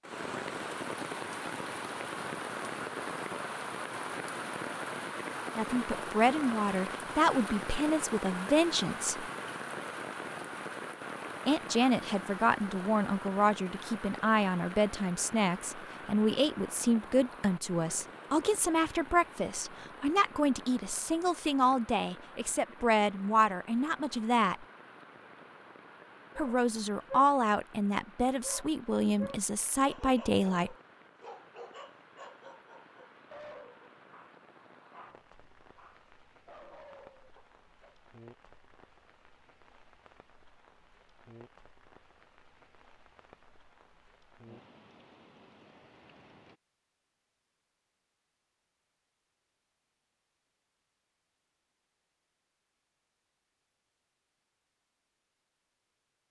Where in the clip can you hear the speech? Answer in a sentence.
You can hear the speech from 5.5 to 9.2 s, from 11.4 to 24.6 s and from 26.4 to 30.8 s.